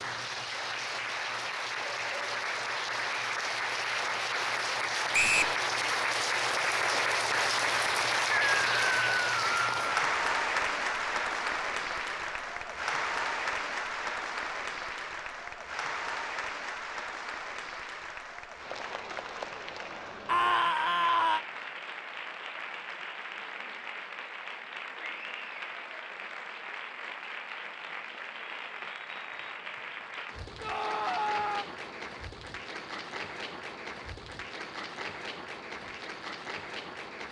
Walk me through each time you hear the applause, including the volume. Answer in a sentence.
You can hear the applause from 0.0 to 37.2 s, getting quieter.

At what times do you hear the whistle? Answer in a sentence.
You can hear the whistle from 5.1 to 5.5 s.